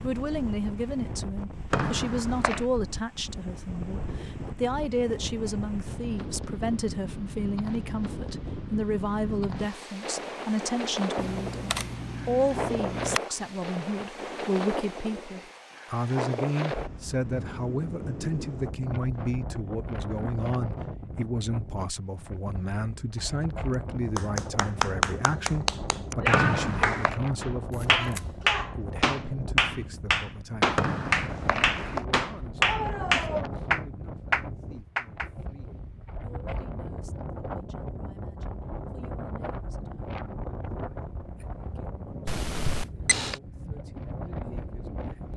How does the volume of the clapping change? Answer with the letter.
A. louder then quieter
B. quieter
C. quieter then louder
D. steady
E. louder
D.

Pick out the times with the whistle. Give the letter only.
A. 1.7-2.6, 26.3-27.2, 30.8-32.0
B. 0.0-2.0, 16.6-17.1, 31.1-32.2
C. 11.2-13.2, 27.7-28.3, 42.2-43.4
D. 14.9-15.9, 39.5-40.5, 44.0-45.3
A.